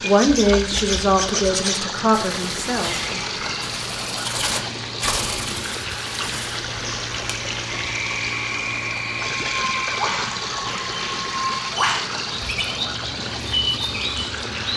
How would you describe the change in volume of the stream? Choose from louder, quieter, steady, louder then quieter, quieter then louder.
steady.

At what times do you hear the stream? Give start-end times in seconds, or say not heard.
0.0-14.7.